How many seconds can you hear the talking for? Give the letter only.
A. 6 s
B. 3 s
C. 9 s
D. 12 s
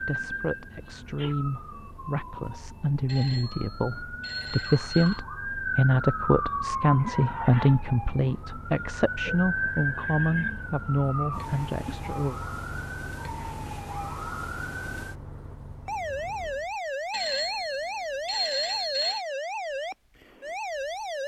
D.